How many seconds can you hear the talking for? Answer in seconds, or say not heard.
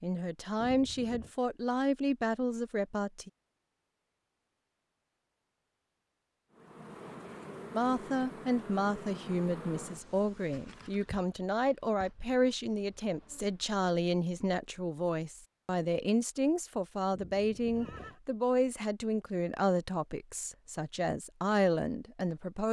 18 s.